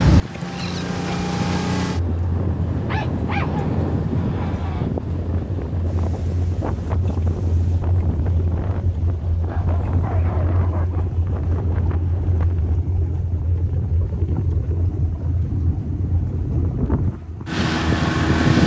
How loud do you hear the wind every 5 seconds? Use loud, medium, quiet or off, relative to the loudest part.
loud, medium, medium, off.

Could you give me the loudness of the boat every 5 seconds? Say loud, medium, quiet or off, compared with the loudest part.
loud, medium, medium, loud.